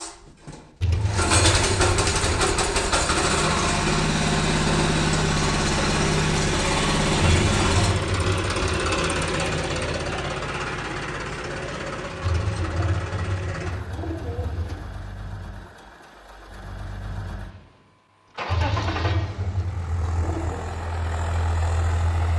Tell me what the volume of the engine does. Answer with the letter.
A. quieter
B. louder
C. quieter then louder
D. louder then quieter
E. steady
C.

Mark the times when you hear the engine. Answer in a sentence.
You can hear the engine from 0.0 to 22.3 s.